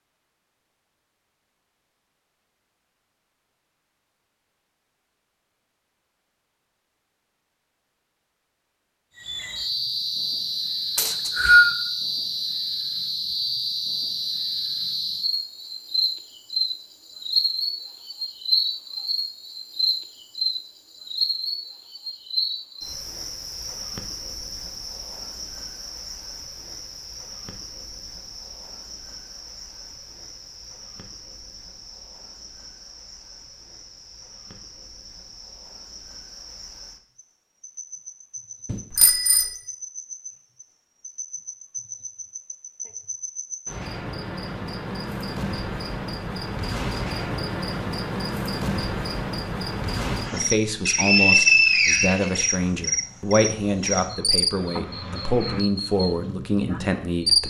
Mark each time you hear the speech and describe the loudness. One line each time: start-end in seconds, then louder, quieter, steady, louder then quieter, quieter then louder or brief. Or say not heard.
50.3-57.4 steady.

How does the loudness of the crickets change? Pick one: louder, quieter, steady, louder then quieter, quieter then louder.
quieter then louder.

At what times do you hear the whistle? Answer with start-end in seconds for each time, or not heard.
10.9-11.8, 50.9-52.4.